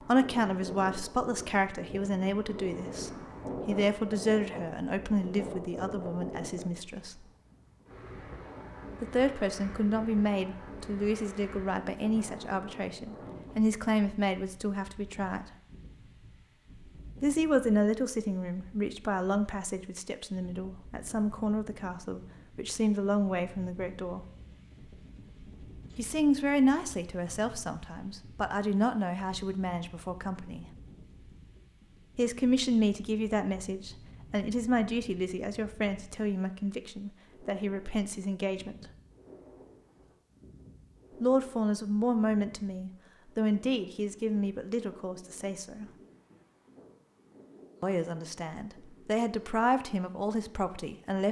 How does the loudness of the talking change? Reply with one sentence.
The volume of the talking stays about the same.